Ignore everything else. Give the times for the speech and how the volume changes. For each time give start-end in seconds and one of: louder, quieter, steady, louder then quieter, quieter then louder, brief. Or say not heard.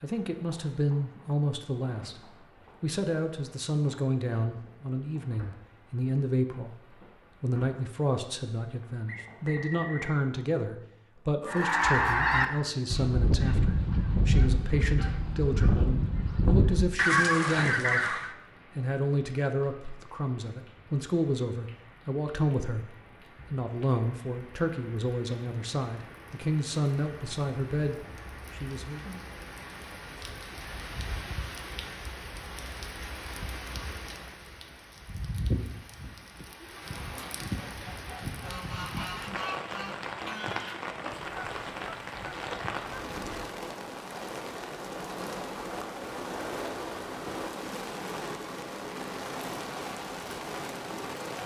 0.0-29.1 steady.